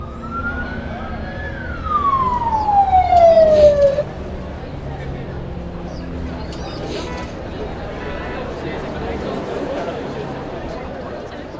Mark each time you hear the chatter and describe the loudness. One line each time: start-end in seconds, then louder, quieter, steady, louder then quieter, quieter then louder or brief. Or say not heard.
0.2-11.5 louder.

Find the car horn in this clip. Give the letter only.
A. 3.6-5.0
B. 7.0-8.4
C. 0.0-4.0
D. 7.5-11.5
B.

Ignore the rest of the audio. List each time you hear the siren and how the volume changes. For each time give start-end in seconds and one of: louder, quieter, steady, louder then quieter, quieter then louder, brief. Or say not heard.
0.0-4.0 quieter then louder.